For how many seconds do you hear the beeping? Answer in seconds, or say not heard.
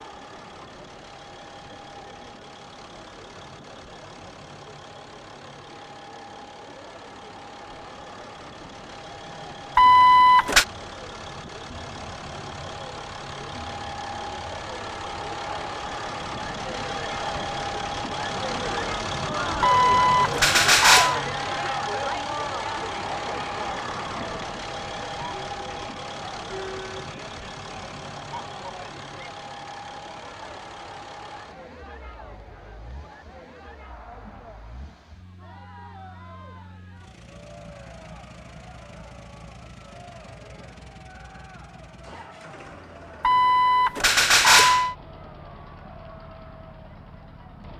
4 s.